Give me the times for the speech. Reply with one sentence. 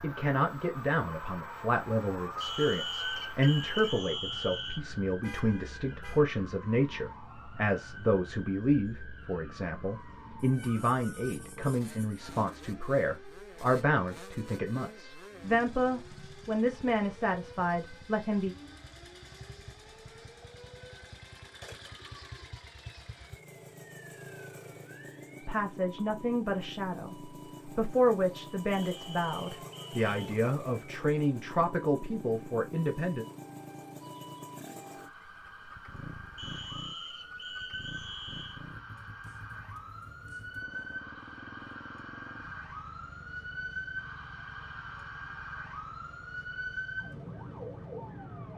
You can hear the speech from 0.0 to 18.6 s and from 25.4 to 33.2 s.